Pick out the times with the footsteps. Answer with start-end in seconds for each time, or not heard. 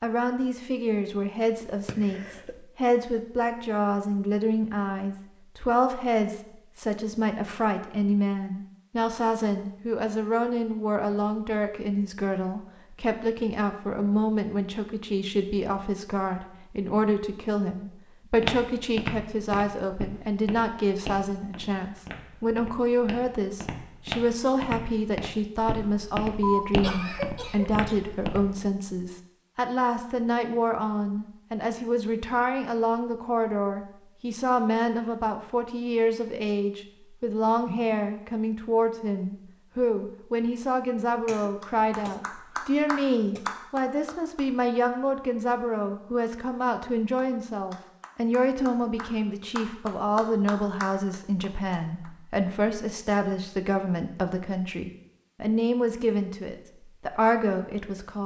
18.4-28.6.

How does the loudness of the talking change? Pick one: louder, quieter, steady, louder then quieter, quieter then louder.
steady.